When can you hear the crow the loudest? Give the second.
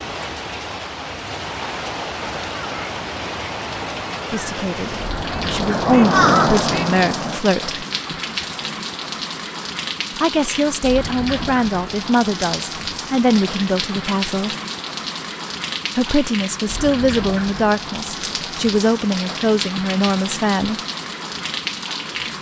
6 s.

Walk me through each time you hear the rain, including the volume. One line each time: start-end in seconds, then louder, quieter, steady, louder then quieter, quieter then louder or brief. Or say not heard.
0.0-22.3 steady.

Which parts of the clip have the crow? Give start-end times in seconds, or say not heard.
2.5-7.4.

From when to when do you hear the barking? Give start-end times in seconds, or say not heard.
not heard.